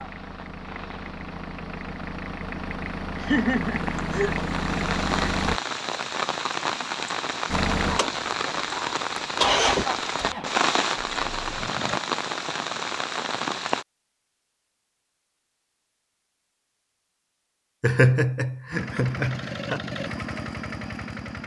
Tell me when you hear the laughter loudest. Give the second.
18 s.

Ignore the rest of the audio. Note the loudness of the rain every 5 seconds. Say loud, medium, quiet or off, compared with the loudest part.
medium, loud, loud, off, off.